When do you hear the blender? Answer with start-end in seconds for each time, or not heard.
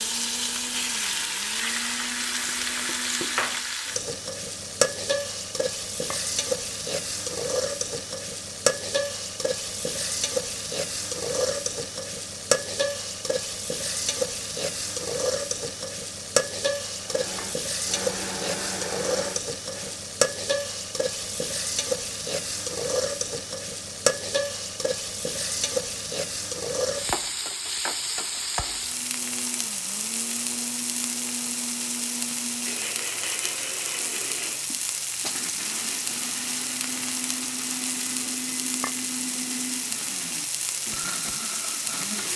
0.0-3.8, 16.9-20.0, 28.8-42.3.